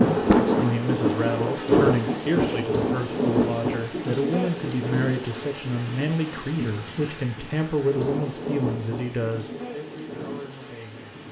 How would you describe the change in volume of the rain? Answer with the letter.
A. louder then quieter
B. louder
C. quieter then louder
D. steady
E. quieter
E.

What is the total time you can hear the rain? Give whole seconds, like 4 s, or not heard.
11 s.